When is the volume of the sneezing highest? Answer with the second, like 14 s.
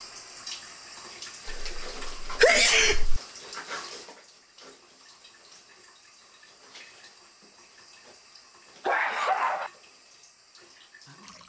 3 s.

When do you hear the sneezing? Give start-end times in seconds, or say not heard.
1.4-3.2, 8.8-9.7.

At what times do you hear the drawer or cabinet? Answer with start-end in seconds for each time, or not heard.
not heard.